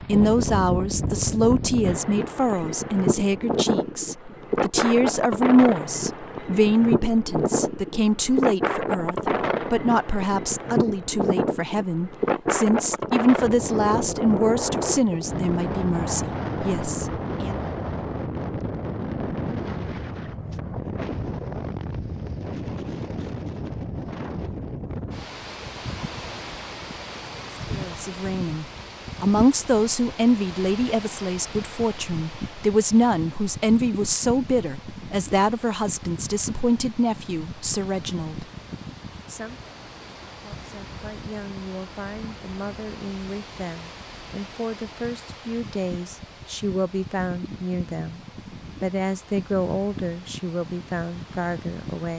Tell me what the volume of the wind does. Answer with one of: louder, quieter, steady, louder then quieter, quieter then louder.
quieter.